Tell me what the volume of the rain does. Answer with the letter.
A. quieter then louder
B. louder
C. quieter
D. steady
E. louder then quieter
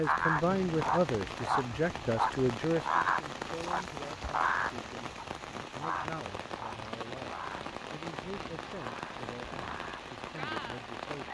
D.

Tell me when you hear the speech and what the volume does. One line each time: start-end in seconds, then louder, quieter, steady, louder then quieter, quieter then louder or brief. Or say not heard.
0.0-11.2 quieter.